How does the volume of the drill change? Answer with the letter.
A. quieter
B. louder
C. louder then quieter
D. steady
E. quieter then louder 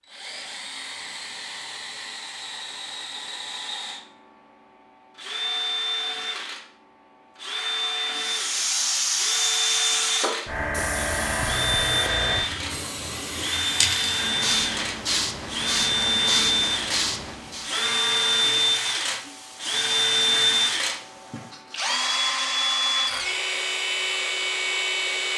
B.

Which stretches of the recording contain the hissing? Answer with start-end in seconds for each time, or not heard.
8.1-17.7.